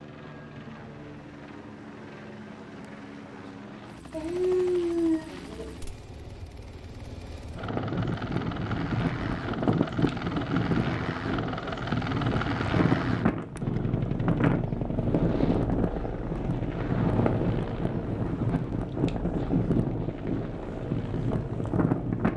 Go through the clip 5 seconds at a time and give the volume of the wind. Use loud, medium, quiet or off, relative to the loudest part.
off, loud, loud, loud, loud.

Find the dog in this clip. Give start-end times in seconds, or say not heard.
4.1-5.7.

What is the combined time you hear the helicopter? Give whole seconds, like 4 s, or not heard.
22 s.